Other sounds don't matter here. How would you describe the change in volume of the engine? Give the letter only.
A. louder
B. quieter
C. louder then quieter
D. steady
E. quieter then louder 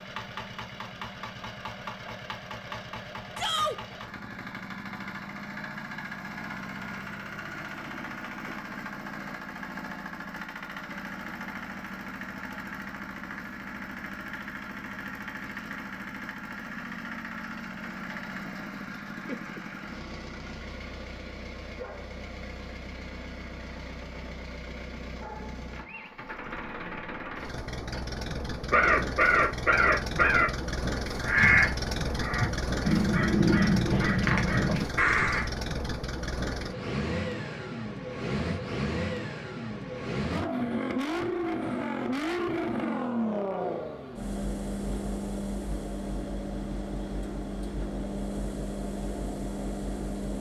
A.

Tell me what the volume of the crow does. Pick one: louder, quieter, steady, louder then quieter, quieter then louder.
steady.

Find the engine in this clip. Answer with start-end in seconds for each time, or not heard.
0.0-50.3.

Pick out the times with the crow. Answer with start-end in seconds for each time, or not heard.
28.7-35.5.